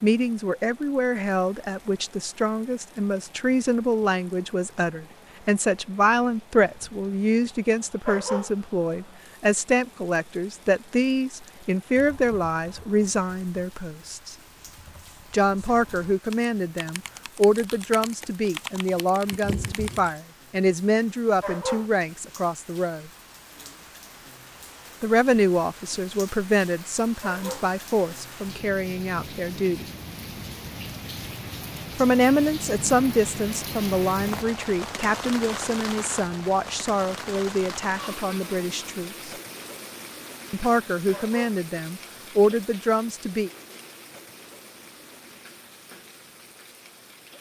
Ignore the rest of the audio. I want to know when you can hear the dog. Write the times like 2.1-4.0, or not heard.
8.1-8.5, 21.4-21.9, 27.2-27.7, 41.1-41.5.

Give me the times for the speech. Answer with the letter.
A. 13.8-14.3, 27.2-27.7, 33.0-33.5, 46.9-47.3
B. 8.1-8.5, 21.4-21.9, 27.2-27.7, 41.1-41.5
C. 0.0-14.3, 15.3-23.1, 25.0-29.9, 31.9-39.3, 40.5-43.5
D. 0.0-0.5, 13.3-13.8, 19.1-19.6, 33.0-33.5
C.